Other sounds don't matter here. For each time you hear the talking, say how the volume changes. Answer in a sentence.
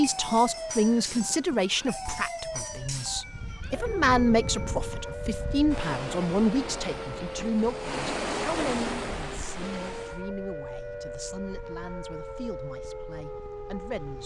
You can hear the talking from 0.0 to 14.2 s, getting quieter.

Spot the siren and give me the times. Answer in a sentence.
The siren can be heard from 0.0 to 14.2 s.